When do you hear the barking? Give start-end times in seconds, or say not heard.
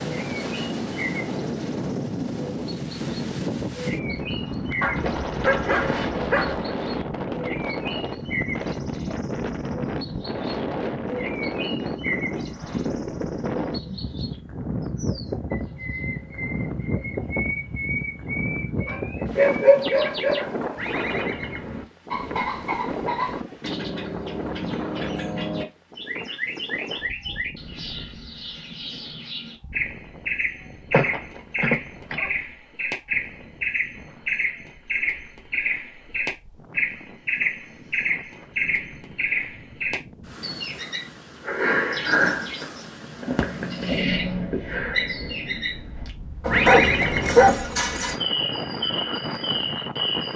4.8-6.8, 18.9-20.8, 30.9-32.3, 46.4-48.1.